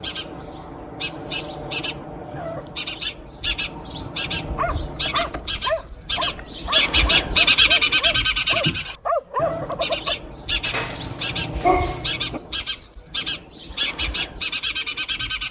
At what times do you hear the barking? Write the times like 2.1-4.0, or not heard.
4.5-12.4.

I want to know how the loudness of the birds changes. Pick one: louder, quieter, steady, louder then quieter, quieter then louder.
louder then quieter.